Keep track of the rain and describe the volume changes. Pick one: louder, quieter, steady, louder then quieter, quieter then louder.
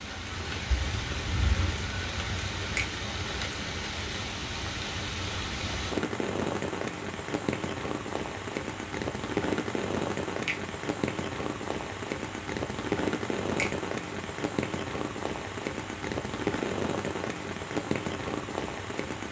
steady.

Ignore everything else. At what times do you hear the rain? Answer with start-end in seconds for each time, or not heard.
0.0-19.2.